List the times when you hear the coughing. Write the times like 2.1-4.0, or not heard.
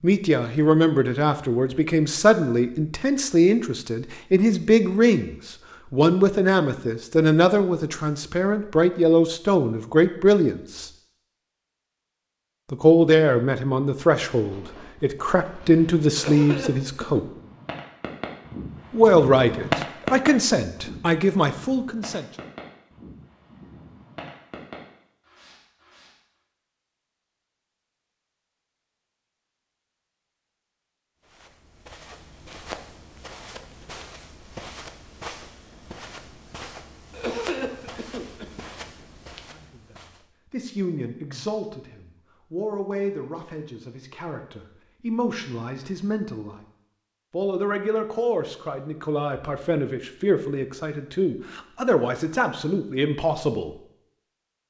16.1-17.2, 37.1-38.5.